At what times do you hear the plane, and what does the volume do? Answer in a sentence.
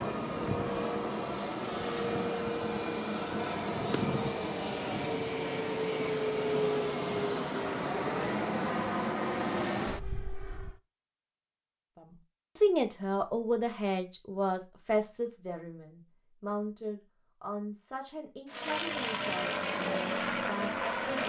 You can hear the plane from 0.0 to 10.8 s, at a steady volume; and briefly from 18.4 to 21.2 s.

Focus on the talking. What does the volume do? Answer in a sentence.
The volume of the talking goes down.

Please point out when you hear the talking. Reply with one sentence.
You can hear the talking from 11.9 to 21.2 s.